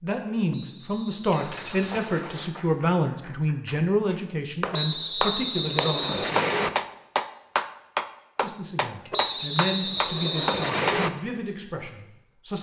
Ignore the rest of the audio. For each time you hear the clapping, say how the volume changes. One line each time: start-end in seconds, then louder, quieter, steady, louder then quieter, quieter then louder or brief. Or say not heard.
1.3-10.9 louder.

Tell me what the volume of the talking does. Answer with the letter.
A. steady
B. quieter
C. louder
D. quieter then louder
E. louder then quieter
B.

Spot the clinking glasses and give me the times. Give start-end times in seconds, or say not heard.
1.3-2.3, 5.7-6.4, 9.1-10.1.